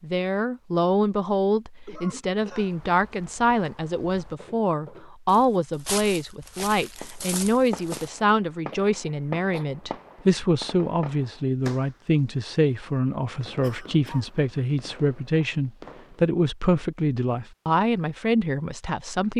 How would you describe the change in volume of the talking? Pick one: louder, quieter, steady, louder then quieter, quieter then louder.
steady.